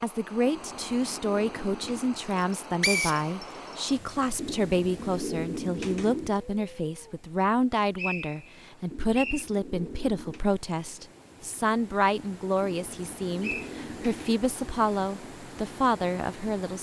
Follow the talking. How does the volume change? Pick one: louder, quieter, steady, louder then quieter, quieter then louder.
steady.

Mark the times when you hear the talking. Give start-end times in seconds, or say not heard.
0.0-16.7.